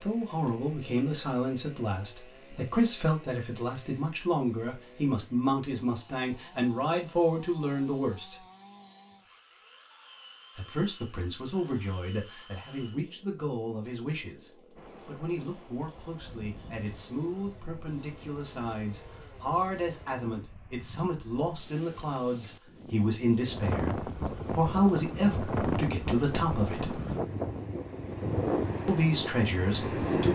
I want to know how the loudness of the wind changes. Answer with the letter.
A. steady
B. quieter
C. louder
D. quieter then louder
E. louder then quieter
C.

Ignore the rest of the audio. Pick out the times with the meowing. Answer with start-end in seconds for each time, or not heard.
not heard.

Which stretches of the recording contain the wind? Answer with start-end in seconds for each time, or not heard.
14.8-30.3.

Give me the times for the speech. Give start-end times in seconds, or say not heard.
0.0-8.3, 10.6-27.0, 28.9-30.3.